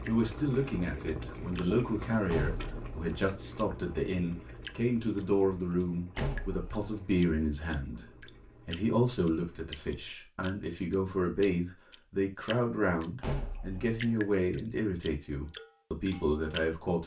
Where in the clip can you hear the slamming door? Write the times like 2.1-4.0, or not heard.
2.3-3.1, 6.2-6.9, 13.2-14.2.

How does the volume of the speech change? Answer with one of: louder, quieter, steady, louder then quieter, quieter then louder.
steady.